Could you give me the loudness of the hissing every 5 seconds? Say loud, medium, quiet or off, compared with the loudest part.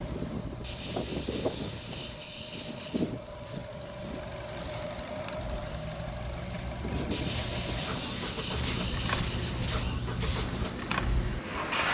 quiet, medium, loud.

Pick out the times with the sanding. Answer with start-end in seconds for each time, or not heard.
0.6-3.1, 7.1-10.0.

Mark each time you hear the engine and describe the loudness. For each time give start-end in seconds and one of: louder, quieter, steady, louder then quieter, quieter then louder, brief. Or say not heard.
0.0-11.7 steady.